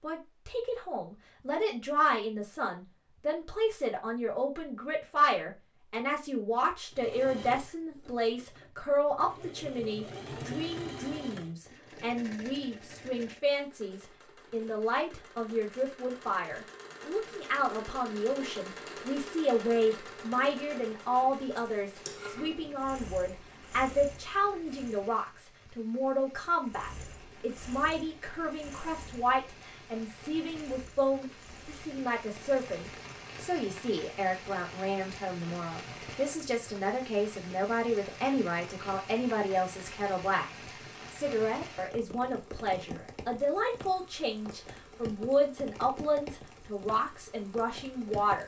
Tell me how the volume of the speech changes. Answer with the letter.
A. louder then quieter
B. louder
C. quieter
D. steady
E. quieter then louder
D.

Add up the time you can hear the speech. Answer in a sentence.
The speech can be heard for 48 seconds in total.